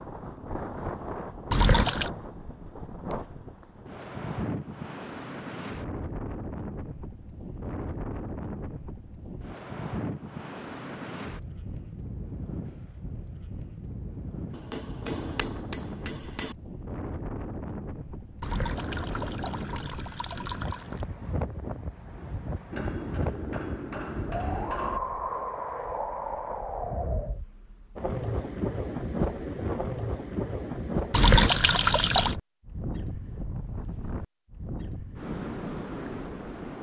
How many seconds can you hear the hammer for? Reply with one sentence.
You can hear the hammer for 4 seconds altogether.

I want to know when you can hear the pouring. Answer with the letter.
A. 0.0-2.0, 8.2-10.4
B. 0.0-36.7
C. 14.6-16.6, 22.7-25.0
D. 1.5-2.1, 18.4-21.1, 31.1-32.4
D.